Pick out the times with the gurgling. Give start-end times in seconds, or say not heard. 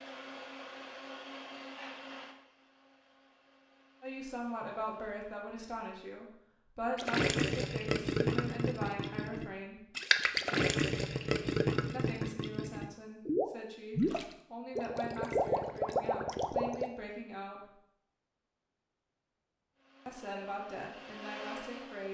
7.0-16.9.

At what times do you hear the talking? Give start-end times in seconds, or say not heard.
4.0-9.8, 11.9-17.8, 20.1-22.0.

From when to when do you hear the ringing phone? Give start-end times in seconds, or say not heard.
not heard.